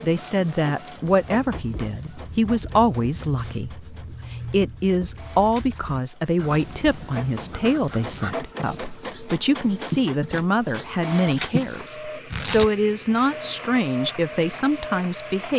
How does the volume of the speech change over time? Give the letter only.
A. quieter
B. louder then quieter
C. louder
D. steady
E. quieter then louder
D.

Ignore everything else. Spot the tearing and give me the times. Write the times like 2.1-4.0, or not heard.
12.3-13.2.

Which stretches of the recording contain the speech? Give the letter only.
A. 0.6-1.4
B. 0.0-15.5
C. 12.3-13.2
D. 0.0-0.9
B.